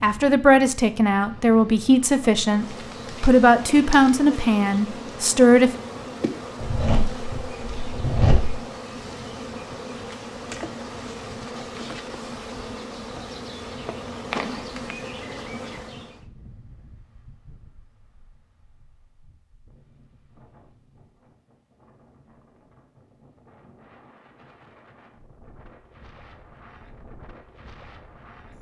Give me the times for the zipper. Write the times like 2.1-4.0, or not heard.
6.6-8.6.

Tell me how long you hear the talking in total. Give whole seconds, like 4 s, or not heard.
6 s.